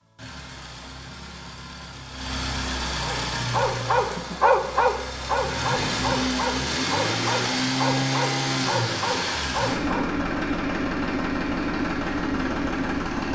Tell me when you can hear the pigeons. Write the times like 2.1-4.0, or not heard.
not heard.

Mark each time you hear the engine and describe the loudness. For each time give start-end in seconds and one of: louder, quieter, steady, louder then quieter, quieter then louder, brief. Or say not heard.
0.0-13.3 louder.